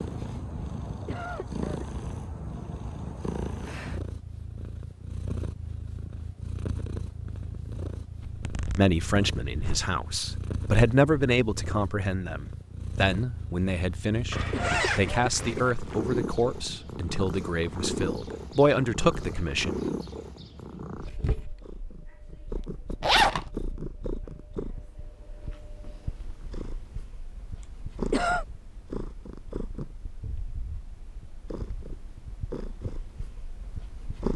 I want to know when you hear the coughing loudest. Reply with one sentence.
The loudest moment of the coughing is at 28 seconds.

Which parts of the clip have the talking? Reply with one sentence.
The talking can be heard from 8.8 to 19.7 s.